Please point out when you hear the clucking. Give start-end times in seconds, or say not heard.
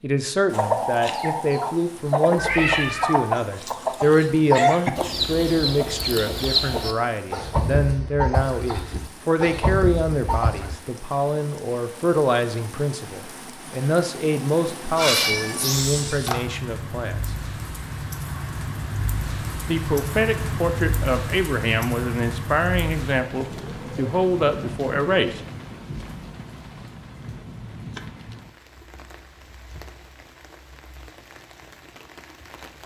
0.5-10.8.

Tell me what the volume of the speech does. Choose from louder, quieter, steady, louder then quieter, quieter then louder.
steady.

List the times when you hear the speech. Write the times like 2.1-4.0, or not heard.
0.0-17.3, 19.6-25.4.